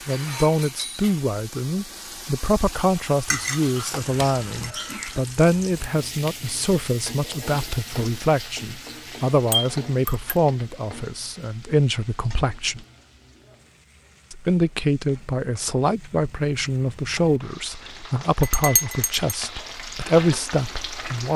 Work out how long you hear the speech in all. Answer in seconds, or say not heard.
20 s.